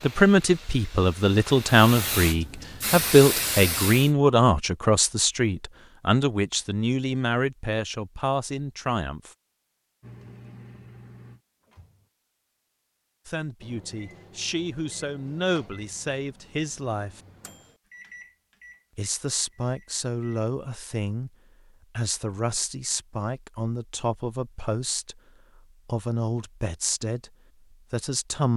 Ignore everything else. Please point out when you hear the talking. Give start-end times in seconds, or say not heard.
0.0-9.3, 13.2-17.2, 18.9-21.3, 21.9-28.5.